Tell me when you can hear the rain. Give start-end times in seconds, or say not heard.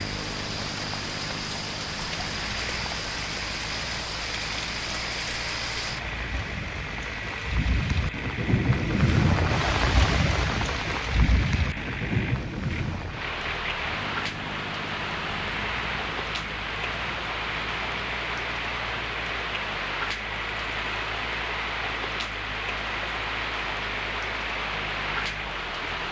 0.0-26.0.